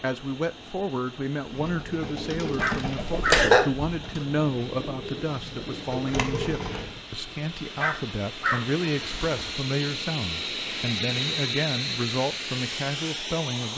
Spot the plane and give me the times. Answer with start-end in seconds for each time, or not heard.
0.0-13.7.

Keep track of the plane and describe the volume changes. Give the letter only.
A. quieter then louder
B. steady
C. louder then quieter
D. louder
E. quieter
D.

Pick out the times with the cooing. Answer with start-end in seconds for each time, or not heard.
1.4-7.0.